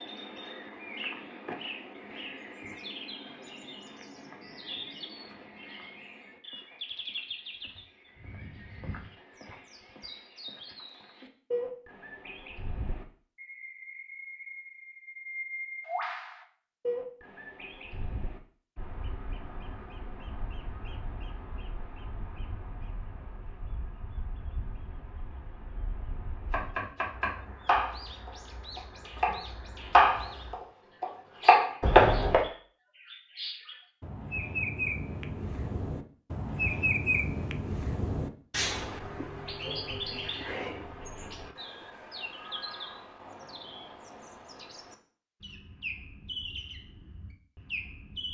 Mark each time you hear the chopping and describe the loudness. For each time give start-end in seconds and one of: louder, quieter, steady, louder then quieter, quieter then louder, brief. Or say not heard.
26.4-32.4 quieter then louder.